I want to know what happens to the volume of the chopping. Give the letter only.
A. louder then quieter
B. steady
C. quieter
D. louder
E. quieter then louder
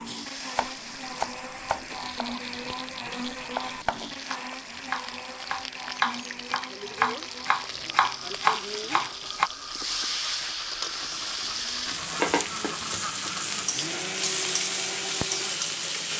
D.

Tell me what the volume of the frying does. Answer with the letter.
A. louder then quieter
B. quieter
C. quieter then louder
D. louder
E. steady
D.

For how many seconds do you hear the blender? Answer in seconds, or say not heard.
16 s.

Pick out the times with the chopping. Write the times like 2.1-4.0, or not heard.
0.6-9.5.